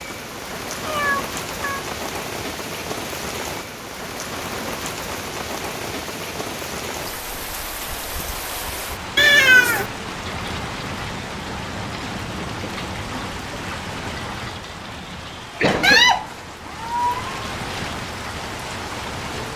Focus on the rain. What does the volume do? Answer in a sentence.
The loudness of the rain stays about the same.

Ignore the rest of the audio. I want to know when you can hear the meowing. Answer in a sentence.
You can hear the meowing from 0.8 to 1.9 s, from 9.2 to 9.8 s and from 15.8 to 17.2 s.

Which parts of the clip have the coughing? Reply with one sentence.
The coughing can be heard from 14.4 to 16.1 s.